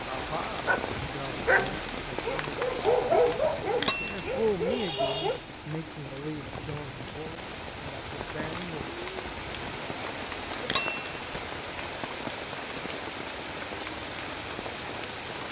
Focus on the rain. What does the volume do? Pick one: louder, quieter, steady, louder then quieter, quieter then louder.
steady.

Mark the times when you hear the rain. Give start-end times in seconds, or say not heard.
0.0-15.4.